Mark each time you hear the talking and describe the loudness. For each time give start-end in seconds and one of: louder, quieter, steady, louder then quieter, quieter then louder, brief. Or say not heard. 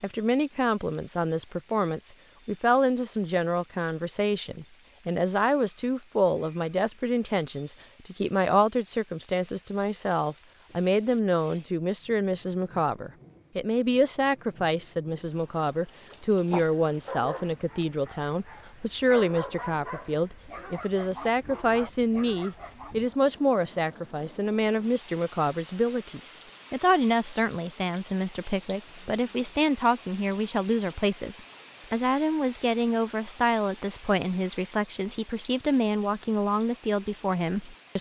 0.0-37.9 steady.